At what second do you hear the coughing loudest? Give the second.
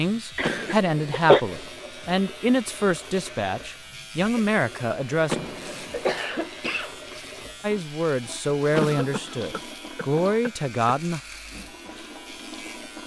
1 s.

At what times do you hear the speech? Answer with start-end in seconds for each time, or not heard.
0.0-5.3, 7.6-11.2.